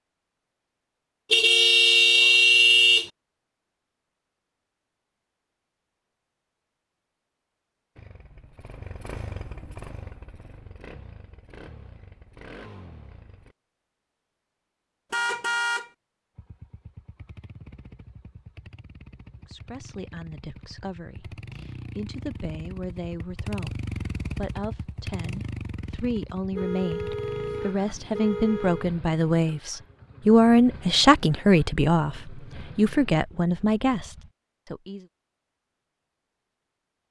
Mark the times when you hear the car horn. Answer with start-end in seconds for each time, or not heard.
1.3-3.1, 15.1-15.9, 26.5-28.9.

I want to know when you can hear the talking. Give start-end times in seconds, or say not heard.
19.4-35.0.